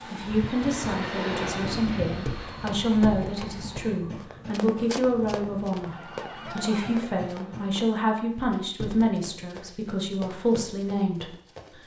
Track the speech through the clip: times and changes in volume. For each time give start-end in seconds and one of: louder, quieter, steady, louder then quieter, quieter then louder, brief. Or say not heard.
0.1-11.3 steady.